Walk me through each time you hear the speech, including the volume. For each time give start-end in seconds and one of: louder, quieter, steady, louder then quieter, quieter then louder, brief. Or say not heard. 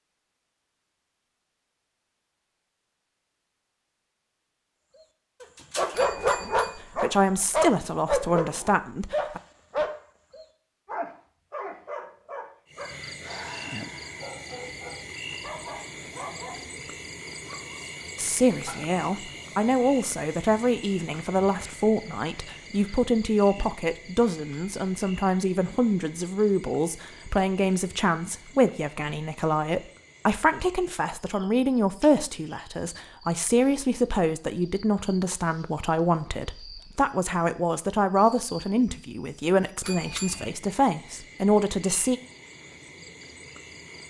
6.8-9.4 brief
18.1-42.2 steady.